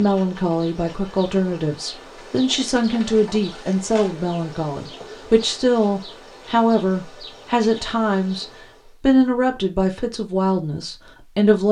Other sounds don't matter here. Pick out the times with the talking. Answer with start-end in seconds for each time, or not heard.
0.0-11.6.